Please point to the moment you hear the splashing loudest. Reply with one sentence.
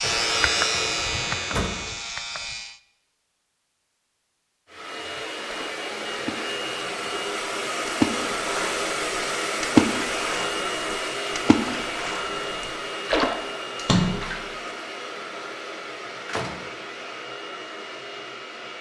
The volume of the splashing peaks at 10 seconds.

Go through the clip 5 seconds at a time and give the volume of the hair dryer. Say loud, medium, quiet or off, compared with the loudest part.
loud, loud, loud, medium.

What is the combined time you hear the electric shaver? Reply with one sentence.
The electric shaver can be heard for 3 seconds in total.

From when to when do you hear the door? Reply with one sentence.
The door can be heard from 1.4 to 1.9 s and from 16.2 to 16.7 s.